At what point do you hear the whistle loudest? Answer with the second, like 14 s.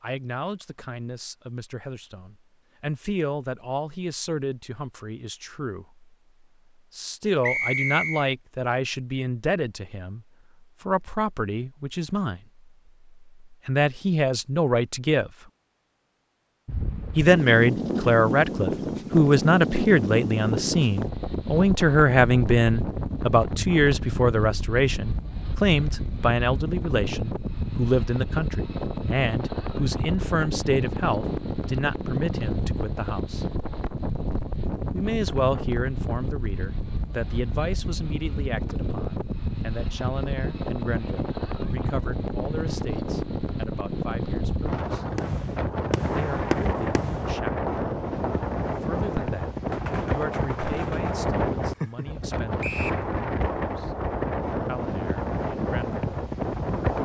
8 s.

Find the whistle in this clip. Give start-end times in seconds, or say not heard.
7.4-8.3, 52.6-53.0.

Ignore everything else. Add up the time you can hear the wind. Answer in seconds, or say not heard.
40 s.